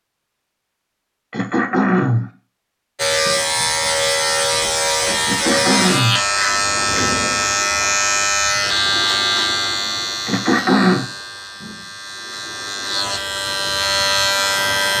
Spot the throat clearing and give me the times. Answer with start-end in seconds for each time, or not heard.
1.3-2.3, 5.2-6.2, 10.2-11.1.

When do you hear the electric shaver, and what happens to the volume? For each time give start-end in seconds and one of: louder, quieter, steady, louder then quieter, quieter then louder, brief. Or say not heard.
3.0-14.9 quieter then louder.